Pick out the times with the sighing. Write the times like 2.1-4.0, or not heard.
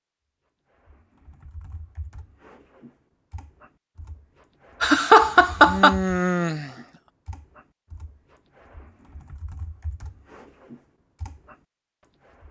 5.7-6.8.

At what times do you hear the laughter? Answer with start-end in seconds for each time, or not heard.
4.8-6.0.